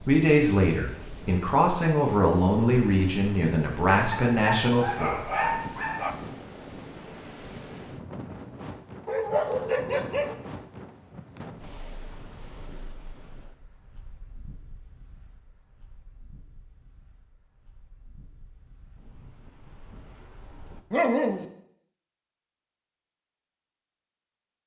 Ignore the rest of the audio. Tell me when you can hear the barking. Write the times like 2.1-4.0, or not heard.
4.1-6.2, 9.1-10.3, 20.9-21.4.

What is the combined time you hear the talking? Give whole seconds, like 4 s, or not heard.
5 s.